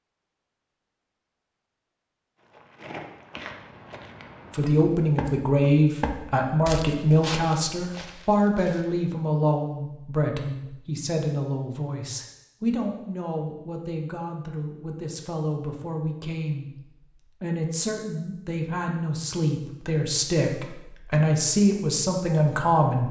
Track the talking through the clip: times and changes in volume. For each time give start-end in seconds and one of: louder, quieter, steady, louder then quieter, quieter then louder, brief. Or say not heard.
4.5-23.0 quieter then louder.